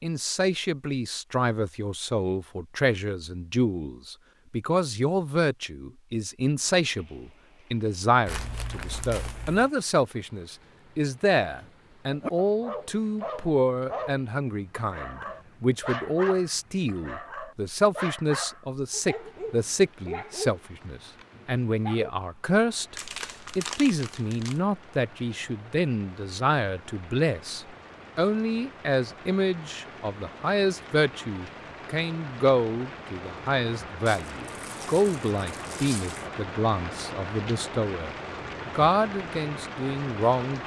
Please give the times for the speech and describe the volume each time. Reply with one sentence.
You can hear the speech from 0.0 to 22.9 s, at a steady volume; and from 23.6 to 40.6 s, at a steady volume.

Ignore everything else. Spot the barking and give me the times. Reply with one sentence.
You can hear the barking from 11.6 to 22.1 s.